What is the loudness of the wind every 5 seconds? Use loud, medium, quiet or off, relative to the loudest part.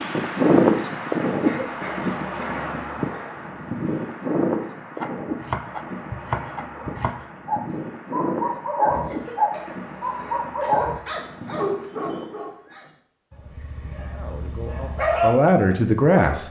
loud, medium, quiet, off.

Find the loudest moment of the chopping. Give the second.
6 s.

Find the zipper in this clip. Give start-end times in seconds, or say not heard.
not heard.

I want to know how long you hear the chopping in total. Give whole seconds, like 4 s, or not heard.
2 s.